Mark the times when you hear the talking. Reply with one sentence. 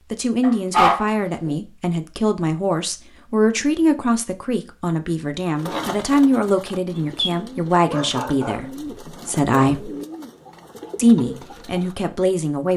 The talking can be heard from 0.1 to 9.9 s and from 10.9 to 12.7 s.